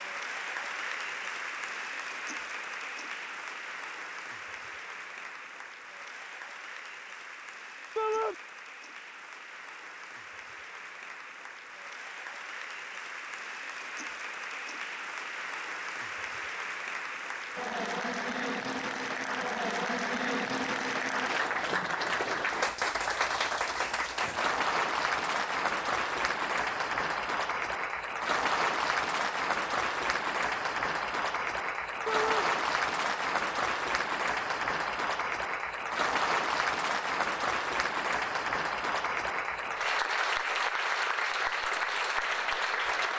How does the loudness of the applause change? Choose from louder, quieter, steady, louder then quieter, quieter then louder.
louder.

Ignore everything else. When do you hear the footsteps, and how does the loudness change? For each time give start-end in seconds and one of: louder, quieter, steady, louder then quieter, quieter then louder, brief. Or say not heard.
not heard.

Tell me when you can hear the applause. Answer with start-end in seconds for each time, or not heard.
0.0-43.1.